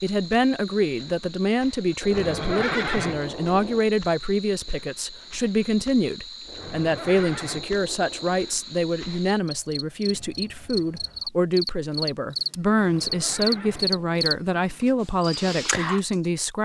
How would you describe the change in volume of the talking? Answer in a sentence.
The loudness of the talking stays about the same.